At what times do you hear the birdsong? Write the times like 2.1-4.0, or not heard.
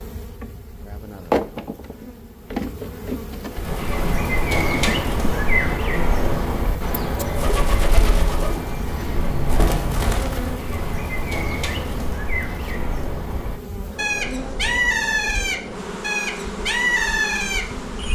3.5-18.1.